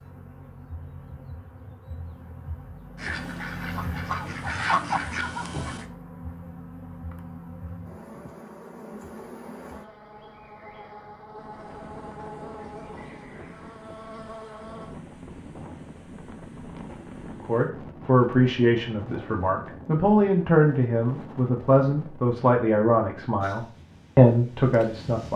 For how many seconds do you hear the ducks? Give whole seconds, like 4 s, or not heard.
3 s.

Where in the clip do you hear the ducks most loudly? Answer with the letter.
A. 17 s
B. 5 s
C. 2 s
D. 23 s
B.